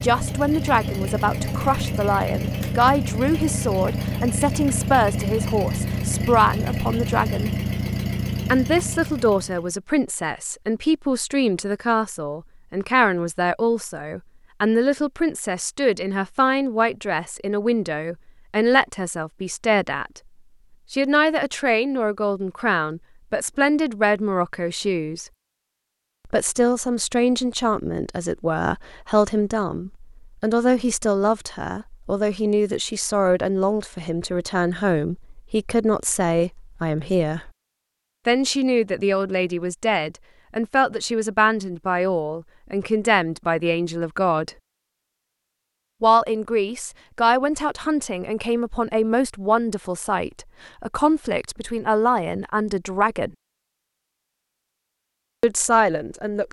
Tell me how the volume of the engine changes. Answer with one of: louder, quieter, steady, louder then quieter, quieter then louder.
steady.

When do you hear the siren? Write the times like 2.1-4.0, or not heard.
not heard.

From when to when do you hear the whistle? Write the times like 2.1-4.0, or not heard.
not heard.